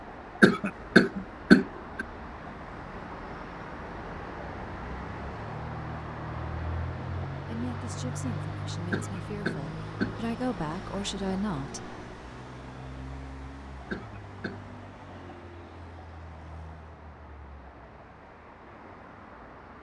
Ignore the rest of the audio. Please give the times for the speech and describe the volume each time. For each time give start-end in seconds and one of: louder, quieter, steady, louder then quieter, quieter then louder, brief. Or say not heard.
7.5-11.8 louder.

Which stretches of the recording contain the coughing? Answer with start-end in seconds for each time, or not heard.
0.4-2.0, 8.9-10.2, 13.9-14.7.